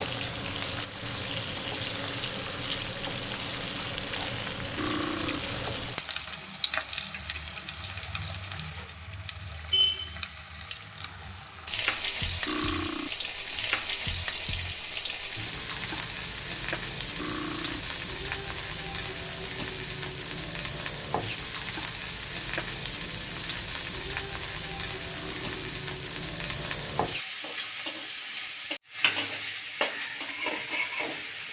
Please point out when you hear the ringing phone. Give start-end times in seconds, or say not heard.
not heard.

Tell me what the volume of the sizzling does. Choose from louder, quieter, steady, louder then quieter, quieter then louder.
steady.